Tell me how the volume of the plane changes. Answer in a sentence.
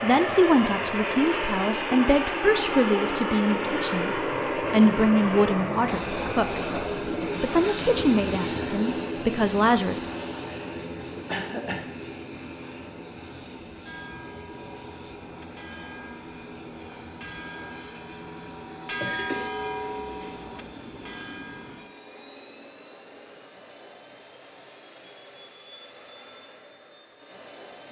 The volume of the plane goes down.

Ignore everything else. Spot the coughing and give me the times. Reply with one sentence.
You can hear the coughing from 11.2 to 11.9 s and from 19.0 to 20.0 s.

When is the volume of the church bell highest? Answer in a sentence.
The loudest moment of the church bell is at 19 seconds.